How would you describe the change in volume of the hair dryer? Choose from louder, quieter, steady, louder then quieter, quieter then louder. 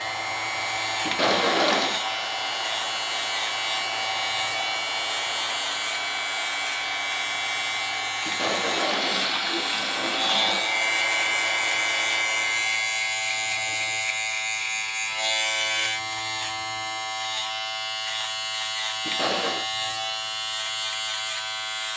steady.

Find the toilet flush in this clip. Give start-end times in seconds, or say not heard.
1.1-2.0, 8.2-10.7, 19.1-19.6.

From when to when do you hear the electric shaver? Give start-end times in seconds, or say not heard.
0.0-21.9.